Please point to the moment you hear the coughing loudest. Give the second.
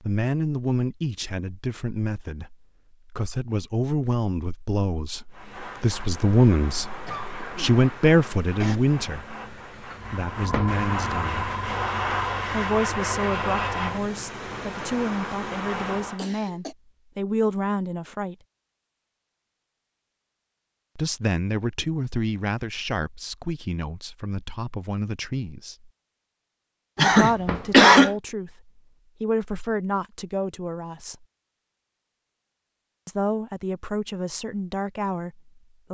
28 s.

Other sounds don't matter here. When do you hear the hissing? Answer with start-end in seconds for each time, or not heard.
5.3-16.2.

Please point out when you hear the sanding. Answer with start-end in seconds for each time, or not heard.
not heard.